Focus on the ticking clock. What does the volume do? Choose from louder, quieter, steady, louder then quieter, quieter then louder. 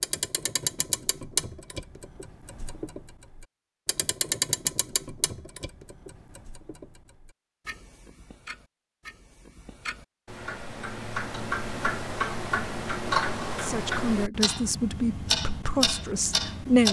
quieter then louder.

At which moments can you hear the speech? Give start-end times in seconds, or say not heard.
13.6-16.8.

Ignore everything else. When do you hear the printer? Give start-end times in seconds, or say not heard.
not heard.